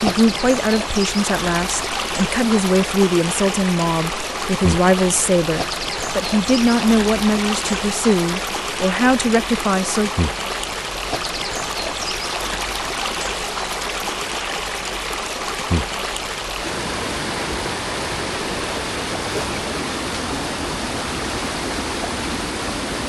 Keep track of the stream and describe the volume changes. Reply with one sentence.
The volume of the stream stays about the same.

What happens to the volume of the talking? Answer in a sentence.
The loudness of the talking stays about the same.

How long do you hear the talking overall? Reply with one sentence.
You can hear the talking for 10 seconds altogether.